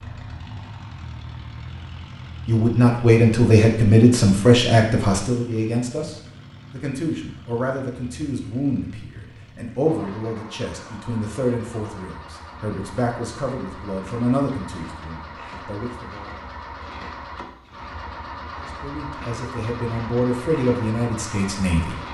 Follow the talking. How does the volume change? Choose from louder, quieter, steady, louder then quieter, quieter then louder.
quieter.